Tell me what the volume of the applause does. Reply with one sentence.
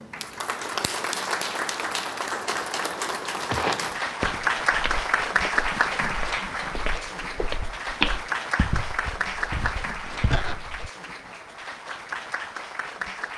The loudness of the applause goes down.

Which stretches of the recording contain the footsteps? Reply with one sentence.
The footsteps can be heard from 3.5 to 10.8 s.